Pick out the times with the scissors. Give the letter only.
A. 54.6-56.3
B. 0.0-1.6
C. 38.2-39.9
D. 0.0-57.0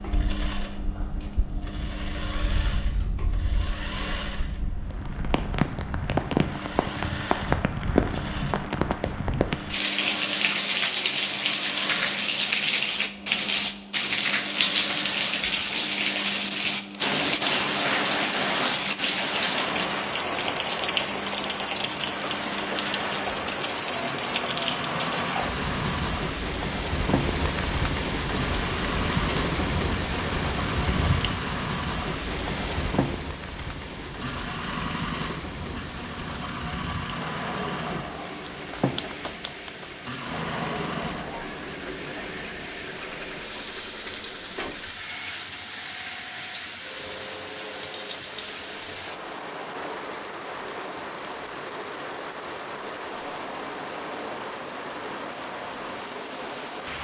C.